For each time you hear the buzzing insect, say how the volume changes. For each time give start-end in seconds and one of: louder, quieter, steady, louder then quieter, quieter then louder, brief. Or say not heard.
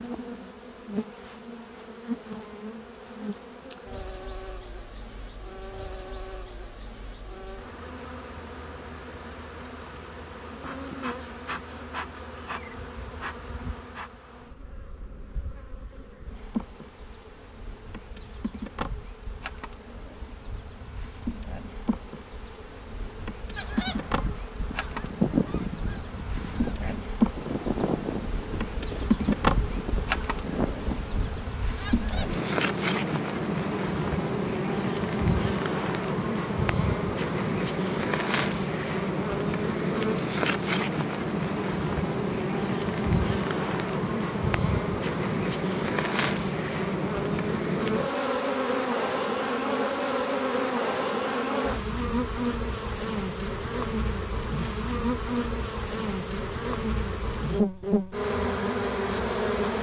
0.0-59.7 louder.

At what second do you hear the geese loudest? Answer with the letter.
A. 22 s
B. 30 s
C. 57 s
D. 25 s
D.